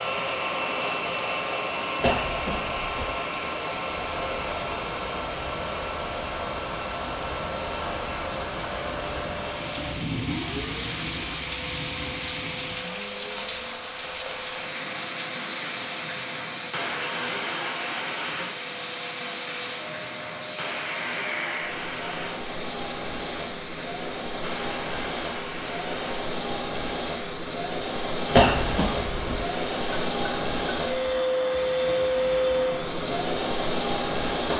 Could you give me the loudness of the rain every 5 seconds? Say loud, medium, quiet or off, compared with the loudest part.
medium, loud, loud, loud, loud, medium, medium.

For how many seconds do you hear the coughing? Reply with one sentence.
The coughing can be heard for 2 seconds in total.